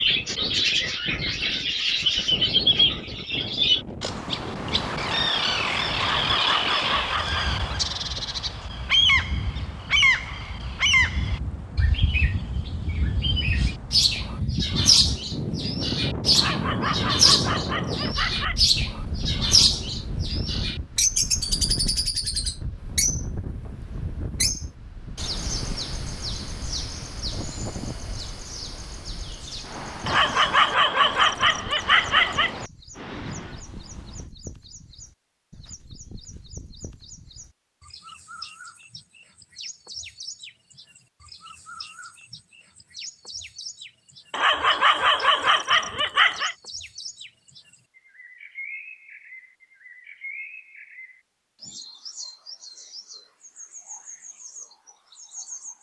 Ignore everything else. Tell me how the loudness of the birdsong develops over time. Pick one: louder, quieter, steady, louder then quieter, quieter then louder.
quieter.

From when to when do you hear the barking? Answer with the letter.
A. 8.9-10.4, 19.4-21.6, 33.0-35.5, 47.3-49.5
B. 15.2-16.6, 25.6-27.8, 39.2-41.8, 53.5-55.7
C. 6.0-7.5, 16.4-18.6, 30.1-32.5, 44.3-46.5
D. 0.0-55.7
C.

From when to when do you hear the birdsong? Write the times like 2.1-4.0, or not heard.
0.0-55.7.